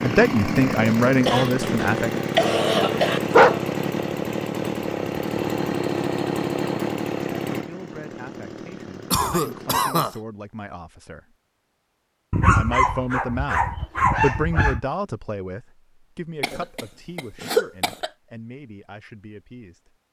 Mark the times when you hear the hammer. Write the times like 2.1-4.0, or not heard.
not heard.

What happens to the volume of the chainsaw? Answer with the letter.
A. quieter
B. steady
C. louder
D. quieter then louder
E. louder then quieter
A.